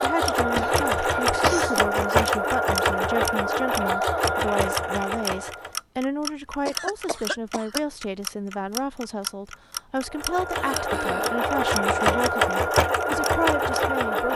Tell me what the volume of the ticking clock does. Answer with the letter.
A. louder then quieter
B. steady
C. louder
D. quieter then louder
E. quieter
B.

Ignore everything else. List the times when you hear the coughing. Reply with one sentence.
You can hear the coughing from 0.6 to 1.9 s, from 6.7 to 7.8 s and from 10.5 to 11.4 s.